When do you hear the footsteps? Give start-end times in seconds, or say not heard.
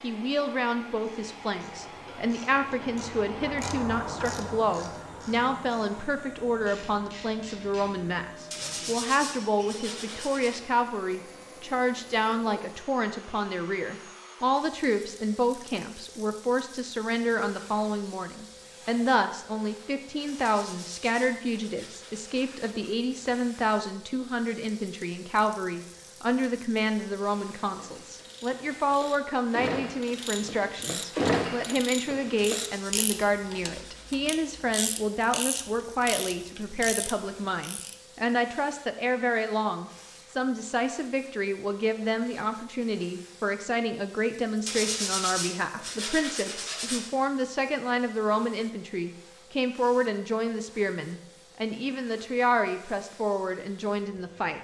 not heard.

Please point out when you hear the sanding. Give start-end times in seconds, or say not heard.
8.5-10.6, 20.4-22.5, 32.6-34.1, 44.6-47.1.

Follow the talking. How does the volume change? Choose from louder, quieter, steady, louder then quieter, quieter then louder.
steady.